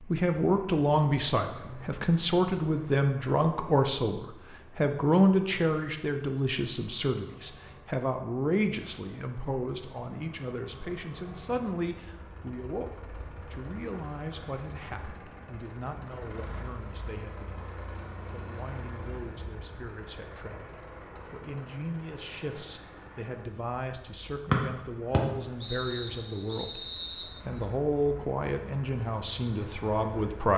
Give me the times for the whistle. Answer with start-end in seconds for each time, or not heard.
24.5-27.2.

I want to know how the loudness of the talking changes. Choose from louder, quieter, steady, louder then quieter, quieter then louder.
quieter then louder.